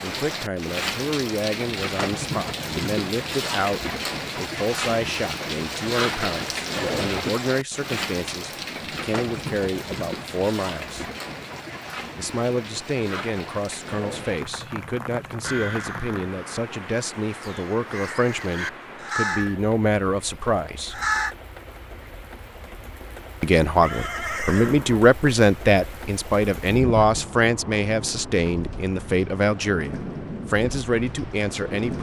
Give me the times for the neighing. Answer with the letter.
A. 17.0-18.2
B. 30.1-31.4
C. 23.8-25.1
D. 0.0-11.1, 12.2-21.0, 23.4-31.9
C.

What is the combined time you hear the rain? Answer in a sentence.
You can hear the rain for 32 seconds altogether.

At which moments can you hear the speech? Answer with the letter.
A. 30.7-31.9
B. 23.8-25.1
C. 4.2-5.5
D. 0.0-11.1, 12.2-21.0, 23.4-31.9
D.